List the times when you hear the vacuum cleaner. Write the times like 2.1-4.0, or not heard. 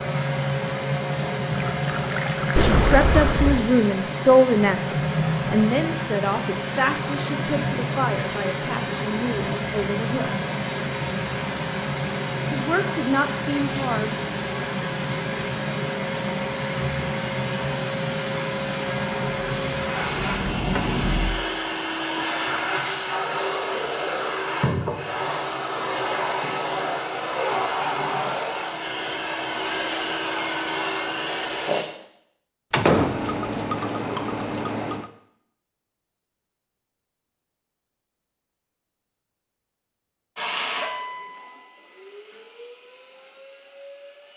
0.0-31.9, 40.4-44.3.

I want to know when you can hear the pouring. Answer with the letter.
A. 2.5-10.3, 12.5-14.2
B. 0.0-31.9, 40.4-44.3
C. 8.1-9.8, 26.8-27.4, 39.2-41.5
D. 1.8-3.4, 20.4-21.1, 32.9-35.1
D.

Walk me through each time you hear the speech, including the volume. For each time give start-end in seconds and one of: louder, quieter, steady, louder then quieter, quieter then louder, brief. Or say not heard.
2.5-10.3 quieter
12.5-14.2 brief.